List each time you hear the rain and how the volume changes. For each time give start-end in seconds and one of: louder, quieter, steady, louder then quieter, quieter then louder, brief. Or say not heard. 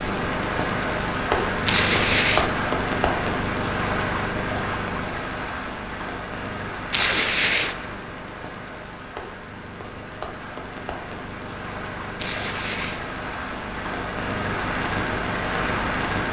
0.0-16.2 quieter then louder.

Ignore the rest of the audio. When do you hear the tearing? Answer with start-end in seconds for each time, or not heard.
1.6-2.5, 6.9-7.8, 12.2-13.0.